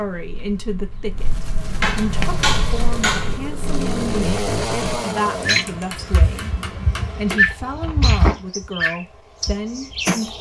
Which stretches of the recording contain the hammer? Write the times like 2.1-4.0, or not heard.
1.8-3.4, 5.4-7.3.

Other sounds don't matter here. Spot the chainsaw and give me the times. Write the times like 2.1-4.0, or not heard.
2.1-5.7.